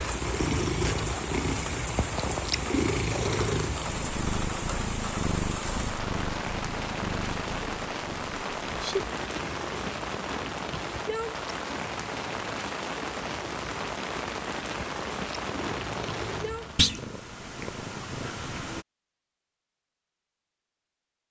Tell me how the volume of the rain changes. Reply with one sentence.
The volume of the rain stays about the same.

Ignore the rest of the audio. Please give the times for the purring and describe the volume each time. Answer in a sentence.
You can hear the purring from 0.0 to 18.9 s, getting quieter then louder.